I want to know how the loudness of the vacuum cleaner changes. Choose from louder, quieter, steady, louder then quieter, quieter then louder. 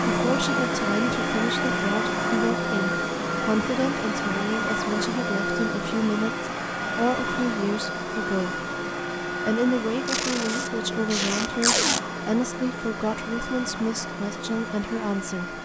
quieter.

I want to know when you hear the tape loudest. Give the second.
12 s.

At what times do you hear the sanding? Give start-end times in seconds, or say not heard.
not heard.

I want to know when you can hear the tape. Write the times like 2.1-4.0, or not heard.
10.1-12.0.